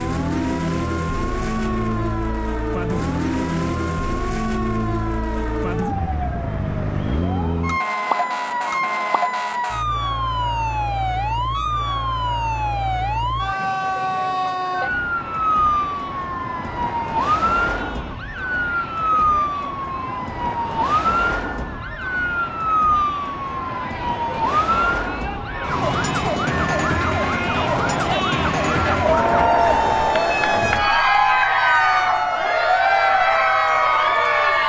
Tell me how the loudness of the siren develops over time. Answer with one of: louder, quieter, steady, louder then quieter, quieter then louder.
steady.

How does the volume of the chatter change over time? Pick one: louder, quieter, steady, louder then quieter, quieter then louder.
louder.